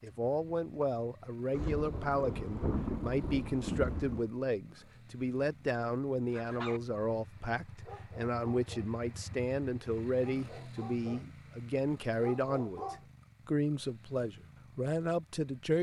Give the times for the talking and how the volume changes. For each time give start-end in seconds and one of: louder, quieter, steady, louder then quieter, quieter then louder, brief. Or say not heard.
0.0-15.7 steady.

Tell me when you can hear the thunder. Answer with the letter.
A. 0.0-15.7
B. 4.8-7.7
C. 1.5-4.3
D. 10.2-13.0
C.